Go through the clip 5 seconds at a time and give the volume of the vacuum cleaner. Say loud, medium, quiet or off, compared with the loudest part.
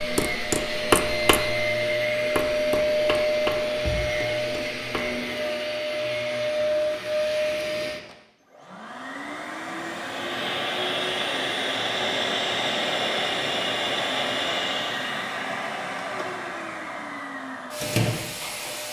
loud, loud, loud, medium.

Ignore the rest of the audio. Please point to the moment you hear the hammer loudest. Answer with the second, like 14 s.
1 s.